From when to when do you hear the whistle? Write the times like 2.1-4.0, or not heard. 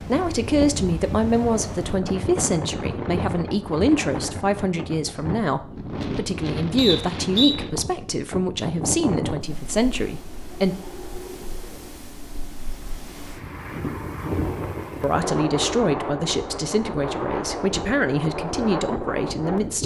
6.8-7.5.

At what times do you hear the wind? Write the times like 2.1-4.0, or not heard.
0.0-19.8.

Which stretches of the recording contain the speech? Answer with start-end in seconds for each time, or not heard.
0.0-10.8, 15.0-19.8.